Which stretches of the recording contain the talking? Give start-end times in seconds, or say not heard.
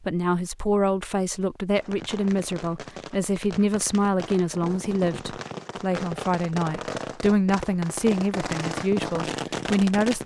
0.0-10.2.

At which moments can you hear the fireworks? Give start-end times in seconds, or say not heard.
1.8-10.2.